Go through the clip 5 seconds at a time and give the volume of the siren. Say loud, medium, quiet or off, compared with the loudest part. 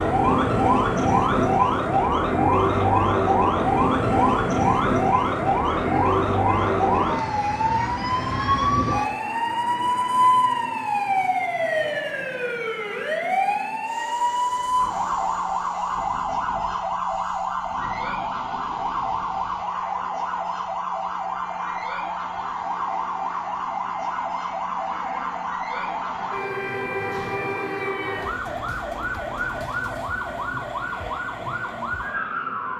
loud, loud, loud, medium, medium, medium, medium.